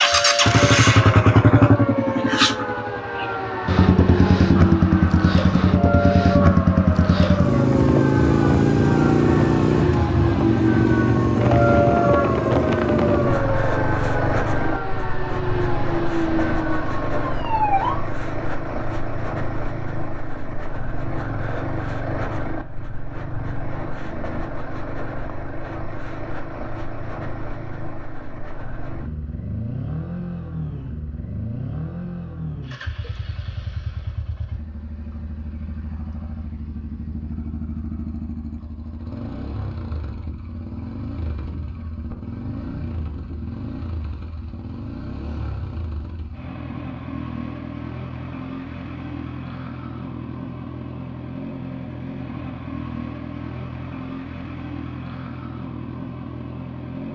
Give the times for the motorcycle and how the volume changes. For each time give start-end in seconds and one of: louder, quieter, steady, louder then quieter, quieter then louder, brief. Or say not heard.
0.0-57.0 quieter.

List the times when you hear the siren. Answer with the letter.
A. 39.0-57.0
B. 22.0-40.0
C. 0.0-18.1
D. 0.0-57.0
C.